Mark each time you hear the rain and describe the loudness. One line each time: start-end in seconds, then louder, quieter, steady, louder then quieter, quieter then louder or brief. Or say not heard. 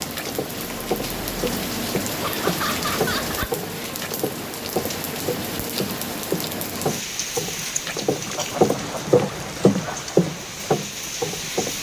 0.0-11.7 quieter.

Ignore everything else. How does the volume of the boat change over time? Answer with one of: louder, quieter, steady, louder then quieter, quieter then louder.
louder.